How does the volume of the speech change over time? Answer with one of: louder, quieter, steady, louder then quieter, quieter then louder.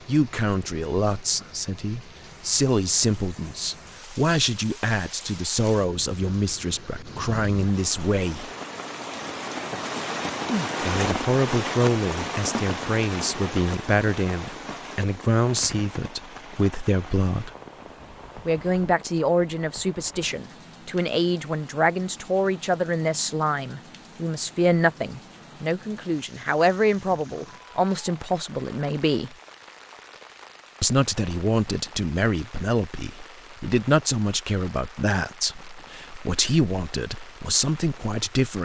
steady.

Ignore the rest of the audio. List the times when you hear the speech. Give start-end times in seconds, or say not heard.
0.1-8.5, 10.8-17.5, 18.4-29.4, 30.8-38.5.